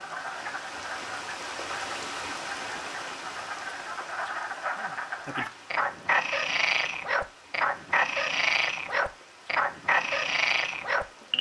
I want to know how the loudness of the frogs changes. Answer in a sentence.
The loudness of the frogs goes up.